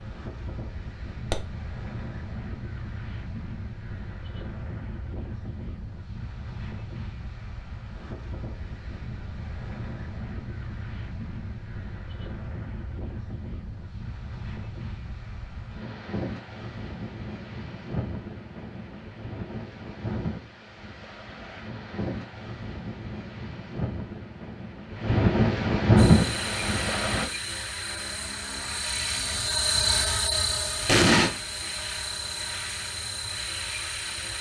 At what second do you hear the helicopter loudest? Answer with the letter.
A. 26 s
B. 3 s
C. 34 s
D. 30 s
D.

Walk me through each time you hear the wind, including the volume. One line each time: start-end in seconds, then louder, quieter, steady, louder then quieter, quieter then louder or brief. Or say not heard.
0.0-27.3 louder.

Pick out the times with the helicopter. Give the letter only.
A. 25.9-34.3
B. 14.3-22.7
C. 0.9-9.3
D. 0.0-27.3
A.